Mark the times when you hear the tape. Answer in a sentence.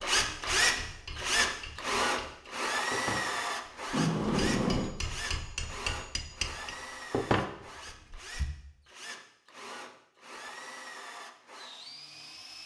The tape can't be heard in this clip.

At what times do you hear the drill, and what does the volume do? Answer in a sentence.
The drill can be heard from 0.0 to 12.6 s, getting quieter.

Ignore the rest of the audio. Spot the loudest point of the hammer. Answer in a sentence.
The volume of the hammer peaks at 7 seconds.